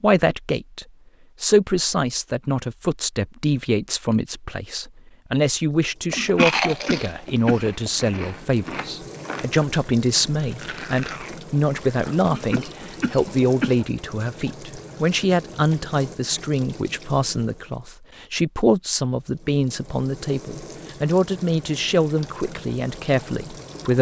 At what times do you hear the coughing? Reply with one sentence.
You can hear the coughing from 6.1 to 7.9 s and from 12.2 to 13.8 s.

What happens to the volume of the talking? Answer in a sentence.
The volume of the talking stays about the same.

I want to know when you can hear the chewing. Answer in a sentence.
You can hear the chewing from 6.3 to 12.3 s.